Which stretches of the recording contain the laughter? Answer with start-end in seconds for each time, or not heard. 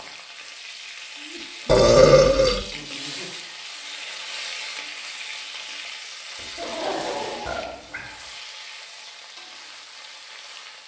1.1-3.4, 6.5-8.0.